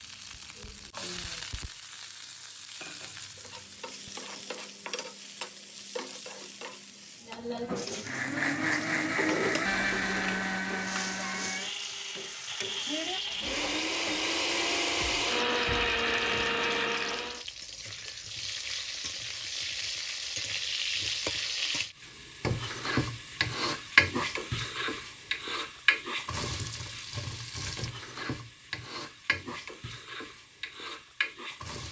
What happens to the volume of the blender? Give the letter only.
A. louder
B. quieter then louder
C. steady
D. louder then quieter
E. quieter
B.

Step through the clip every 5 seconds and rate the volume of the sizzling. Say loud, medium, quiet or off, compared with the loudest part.
quiet, medium, medium, medium, loud, medium, medium.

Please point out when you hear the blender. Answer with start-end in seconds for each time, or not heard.
8.0-17.4.